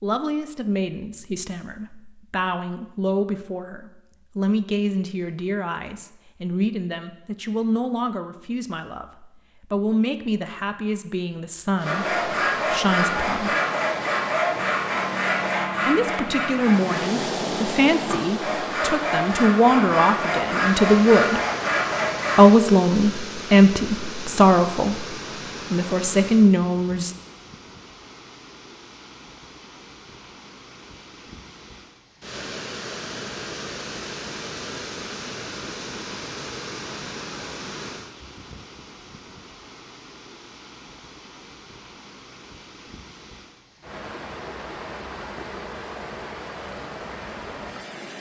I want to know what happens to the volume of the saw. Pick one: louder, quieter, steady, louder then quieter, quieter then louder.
quieter then louder.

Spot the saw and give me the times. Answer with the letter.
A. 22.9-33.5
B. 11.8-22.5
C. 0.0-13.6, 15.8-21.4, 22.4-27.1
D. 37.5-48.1
B.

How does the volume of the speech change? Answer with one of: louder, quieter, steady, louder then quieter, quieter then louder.
louder.